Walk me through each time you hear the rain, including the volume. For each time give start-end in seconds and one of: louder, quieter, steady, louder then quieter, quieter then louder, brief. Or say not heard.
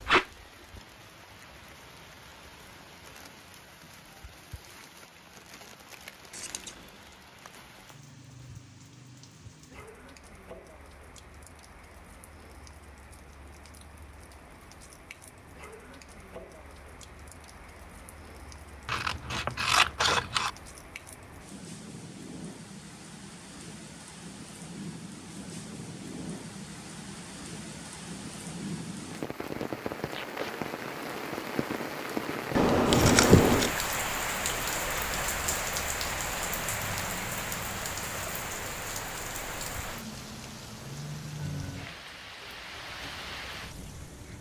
0.0-44.3 louder.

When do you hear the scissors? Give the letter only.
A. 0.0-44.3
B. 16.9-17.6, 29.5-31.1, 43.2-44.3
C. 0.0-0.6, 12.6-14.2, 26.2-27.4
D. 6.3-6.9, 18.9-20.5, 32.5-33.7
D.